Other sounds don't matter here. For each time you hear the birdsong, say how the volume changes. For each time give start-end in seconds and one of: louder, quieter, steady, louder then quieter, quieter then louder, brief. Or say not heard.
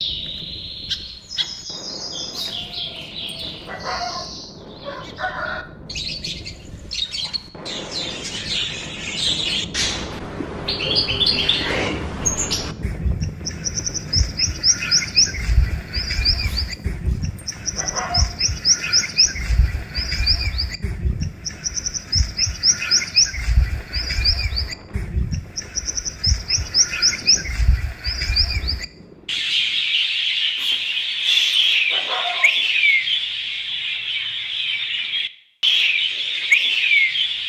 0.0-37.4 louder.